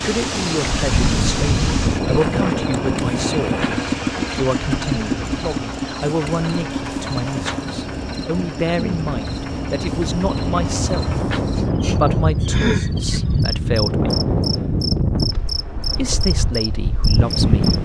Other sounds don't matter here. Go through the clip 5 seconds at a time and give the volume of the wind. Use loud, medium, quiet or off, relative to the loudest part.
loud, medium, loud, loud.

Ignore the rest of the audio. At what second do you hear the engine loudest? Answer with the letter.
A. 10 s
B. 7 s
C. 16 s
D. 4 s
D.